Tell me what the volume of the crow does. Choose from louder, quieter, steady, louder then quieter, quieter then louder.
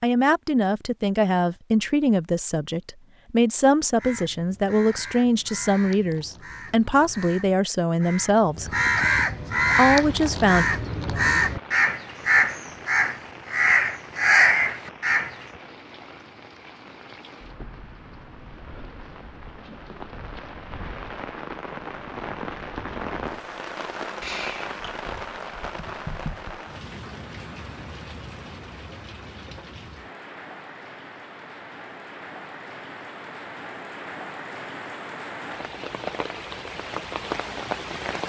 louder.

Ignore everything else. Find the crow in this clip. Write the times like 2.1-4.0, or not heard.
4.0-15.4.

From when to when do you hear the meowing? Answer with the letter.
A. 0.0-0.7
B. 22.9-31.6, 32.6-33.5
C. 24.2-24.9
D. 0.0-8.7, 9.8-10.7
C.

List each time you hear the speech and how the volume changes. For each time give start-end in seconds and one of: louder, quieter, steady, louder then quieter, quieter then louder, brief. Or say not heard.
0.0-8.7 steady
9.8-10.7 brief.